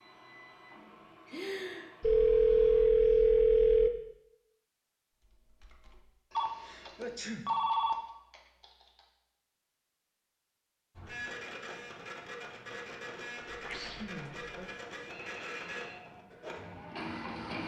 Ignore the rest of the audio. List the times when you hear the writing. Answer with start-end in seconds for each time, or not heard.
not heard.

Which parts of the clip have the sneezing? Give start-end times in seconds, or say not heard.
1.2-2.0, 6.6-7.5, 13.5-14.7.